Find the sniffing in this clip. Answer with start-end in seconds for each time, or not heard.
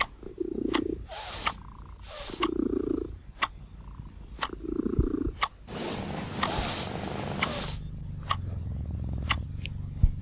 1.1-2.5, 6.4-7.8.